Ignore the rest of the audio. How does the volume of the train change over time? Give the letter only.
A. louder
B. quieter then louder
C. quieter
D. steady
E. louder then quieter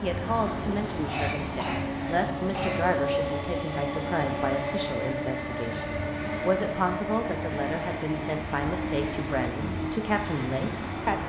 D.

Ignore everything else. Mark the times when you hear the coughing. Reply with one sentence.
The coughing can be heard from 1.1 to 2.8 s.